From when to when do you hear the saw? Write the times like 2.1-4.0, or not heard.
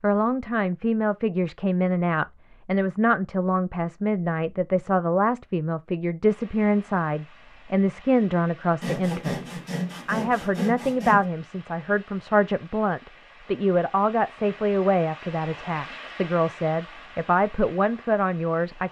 8.8-11.2.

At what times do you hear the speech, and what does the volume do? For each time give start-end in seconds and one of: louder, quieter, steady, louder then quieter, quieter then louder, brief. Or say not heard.
0.0-18.8 steady.